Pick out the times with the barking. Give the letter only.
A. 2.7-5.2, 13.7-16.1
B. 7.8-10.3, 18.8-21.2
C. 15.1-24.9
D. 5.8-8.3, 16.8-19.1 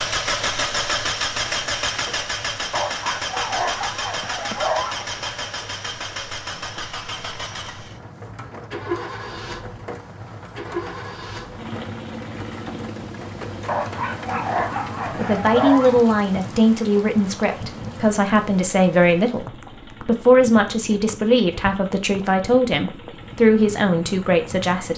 A.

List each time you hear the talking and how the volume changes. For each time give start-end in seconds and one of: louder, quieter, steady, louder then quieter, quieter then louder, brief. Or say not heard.
15.1-24.9 steady.